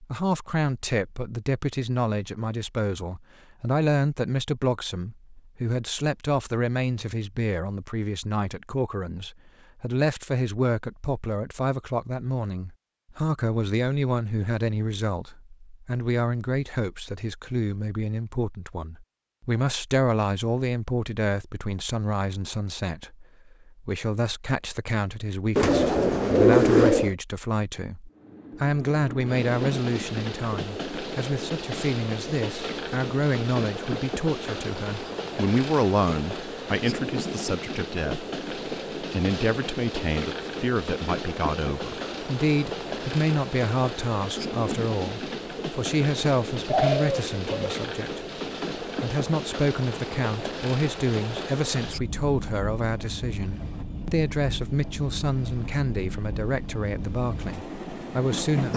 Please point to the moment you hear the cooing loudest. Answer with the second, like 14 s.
27 s.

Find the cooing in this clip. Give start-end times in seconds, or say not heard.
25.6-27.1, 46.6-47.8.